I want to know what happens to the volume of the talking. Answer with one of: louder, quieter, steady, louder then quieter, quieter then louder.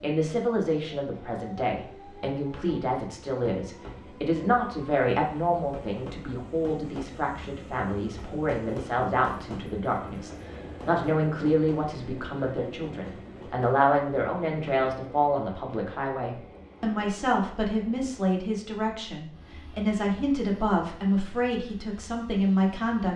steady.